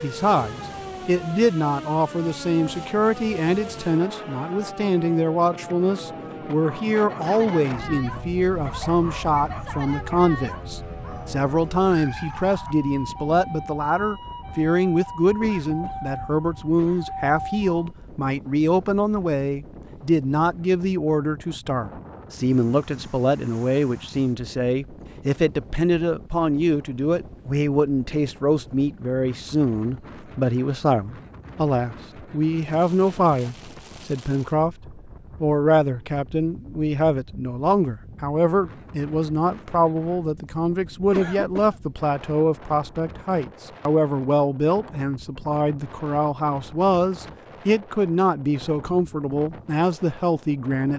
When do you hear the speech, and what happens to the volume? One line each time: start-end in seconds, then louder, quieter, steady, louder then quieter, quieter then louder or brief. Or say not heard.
0.0-50.9 steady.